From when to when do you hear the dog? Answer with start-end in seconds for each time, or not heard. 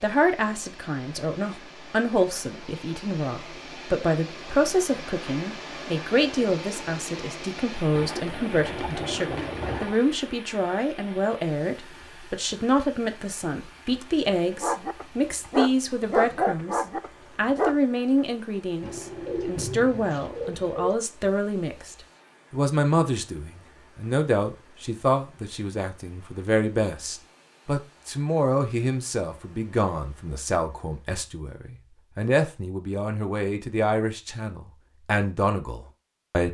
14.5-17.8.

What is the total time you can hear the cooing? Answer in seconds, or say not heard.
4 s.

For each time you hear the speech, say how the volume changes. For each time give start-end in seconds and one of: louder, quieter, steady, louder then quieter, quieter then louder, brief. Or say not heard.
0.0-36.4 steady.